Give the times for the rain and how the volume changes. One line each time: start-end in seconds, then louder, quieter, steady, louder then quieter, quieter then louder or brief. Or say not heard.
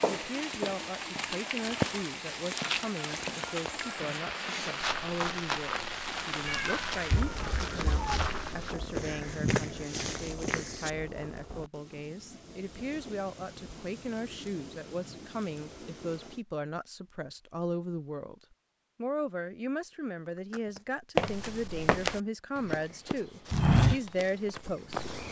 0.0-16.4 quieter.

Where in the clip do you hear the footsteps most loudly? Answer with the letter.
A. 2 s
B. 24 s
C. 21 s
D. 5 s
B.